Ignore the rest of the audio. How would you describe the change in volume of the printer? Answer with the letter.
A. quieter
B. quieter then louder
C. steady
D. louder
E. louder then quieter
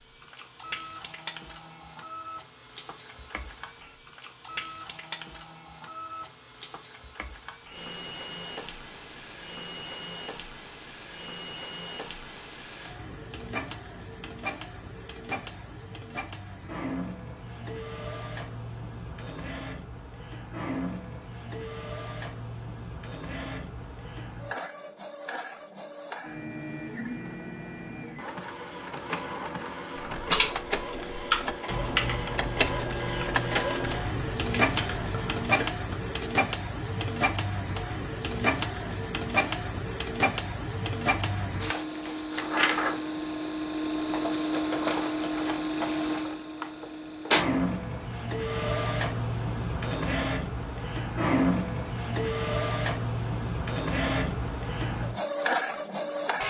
D.